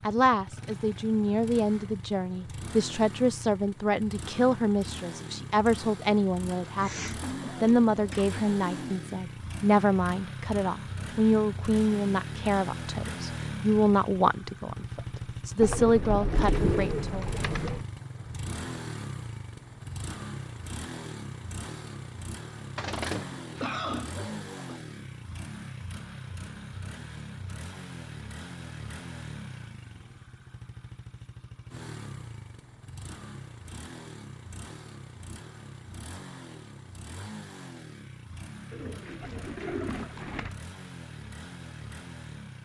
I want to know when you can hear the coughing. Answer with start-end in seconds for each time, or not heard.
23.6-24.8.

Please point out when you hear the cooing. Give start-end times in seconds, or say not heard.
6.6-8.9, 15.6-17.9, 22.8-24.6, 38.7-40.5.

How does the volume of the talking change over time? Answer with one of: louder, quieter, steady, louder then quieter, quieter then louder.
steady.